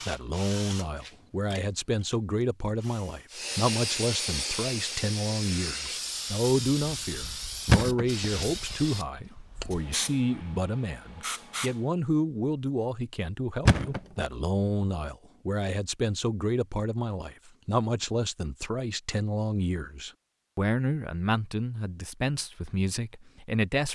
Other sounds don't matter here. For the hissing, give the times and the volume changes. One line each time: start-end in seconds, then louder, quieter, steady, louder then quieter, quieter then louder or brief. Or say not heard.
3.3-11.9 quieter.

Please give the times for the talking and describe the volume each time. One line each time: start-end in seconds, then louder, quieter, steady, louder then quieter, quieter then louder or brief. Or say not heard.
0.1-23.9 steady.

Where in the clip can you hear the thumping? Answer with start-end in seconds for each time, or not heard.
7.7-8.2, 13.7-14.2.